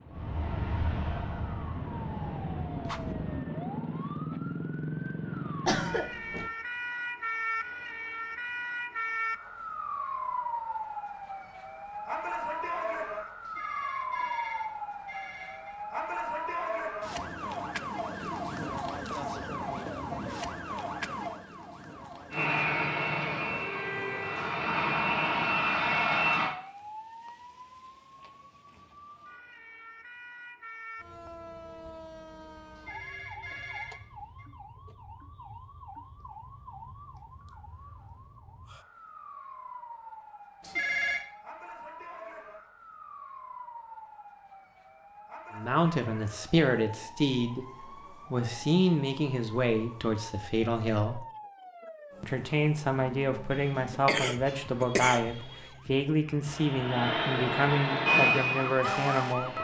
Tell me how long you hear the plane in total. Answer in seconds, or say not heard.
11 s.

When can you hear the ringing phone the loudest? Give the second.
41 s.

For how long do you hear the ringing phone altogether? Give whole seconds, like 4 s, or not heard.
5 s.